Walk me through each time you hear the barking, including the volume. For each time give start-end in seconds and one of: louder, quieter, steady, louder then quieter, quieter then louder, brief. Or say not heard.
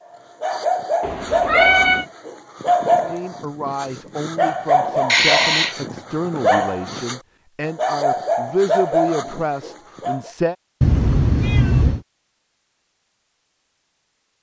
0.4-10.3 steady.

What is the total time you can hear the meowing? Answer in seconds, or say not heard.
3 s.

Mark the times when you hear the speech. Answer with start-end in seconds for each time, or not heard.
3.0-10.6.